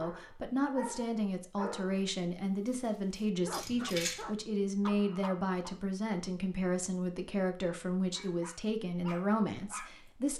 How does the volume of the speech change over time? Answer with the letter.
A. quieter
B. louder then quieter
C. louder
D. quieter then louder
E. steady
E.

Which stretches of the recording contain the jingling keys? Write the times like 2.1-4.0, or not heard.
3.5-4.2.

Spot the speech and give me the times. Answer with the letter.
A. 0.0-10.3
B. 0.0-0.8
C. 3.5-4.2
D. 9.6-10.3
A.